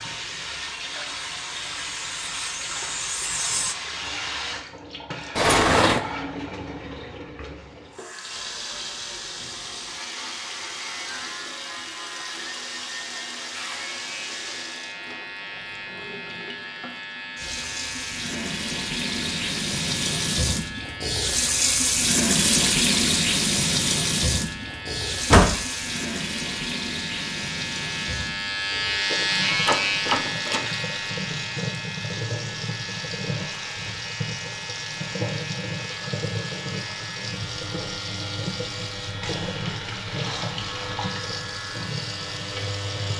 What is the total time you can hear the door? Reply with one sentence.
You can hear the door for 2 seconds altogether.